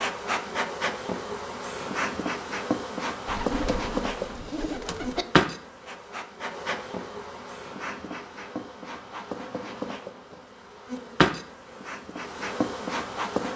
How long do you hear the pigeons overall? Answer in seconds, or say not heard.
2 s.